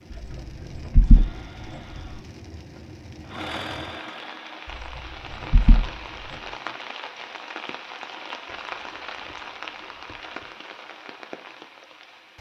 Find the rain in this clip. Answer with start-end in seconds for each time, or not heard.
0.0-12.3.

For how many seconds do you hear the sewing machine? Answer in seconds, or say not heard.
7 s.